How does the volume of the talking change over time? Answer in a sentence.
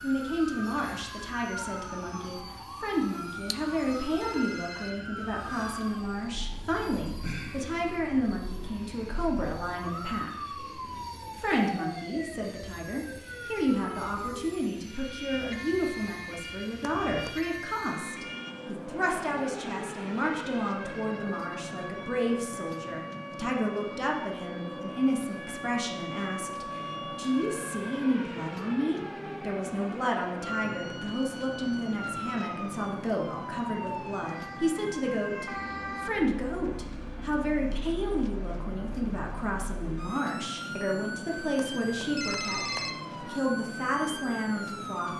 The loudness of the talking stays about the same.